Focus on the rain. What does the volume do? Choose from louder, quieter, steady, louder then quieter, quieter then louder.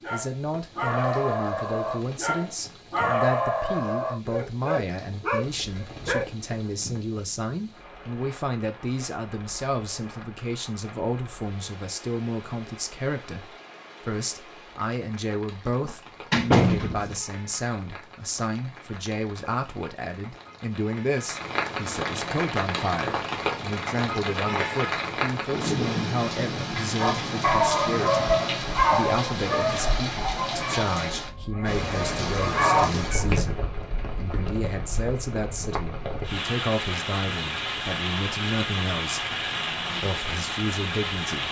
louder.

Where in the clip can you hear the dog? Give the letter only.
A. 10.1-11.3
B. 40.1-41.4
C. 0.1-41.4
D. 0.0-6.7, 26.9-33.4
D.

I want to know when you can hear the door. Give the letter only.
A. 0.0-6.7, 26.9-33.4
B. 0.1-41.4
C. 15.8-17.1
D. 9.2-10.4
C.